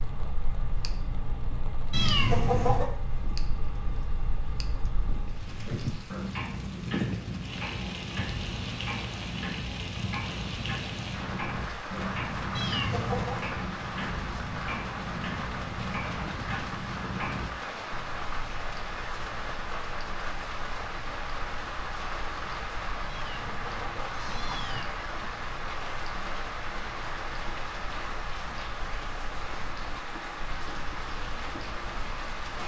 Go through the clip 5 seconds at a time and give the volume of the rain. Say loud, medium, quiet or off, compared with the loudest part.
quiet, loud, loud, loud, loud, loud, loud.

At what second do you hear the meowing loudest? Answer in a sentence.
The volume of the meowing peaks at 2 seconds.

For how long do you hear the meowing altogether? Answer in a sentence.
The meowing can be heard for 4 seconds in total.